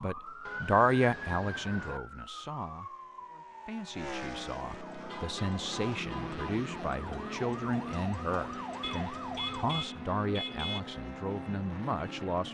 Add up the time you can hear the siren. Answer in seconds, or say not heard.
10 s.